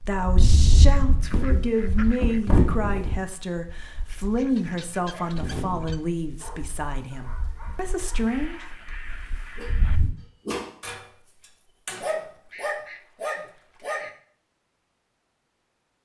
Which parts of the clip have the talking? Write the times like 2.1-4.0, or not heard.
0.0-8.6.